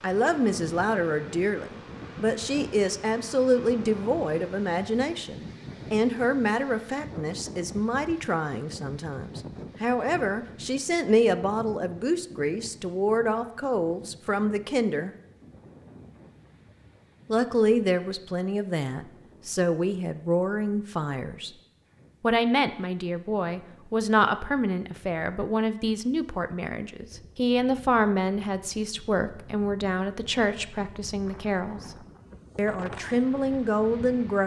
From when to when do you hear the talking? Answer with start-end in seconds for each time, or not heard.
0.0-15.1, 17.2-21.5, 22.2-31.9, 32.5-34.4.